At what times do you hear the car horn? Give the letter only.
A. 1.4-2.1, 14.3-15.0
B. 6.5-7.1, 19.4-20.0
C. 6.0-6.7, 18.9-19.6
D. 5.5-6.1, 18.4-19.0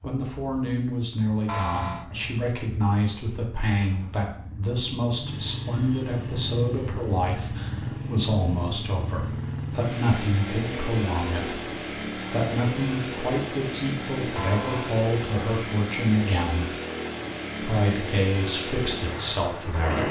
A.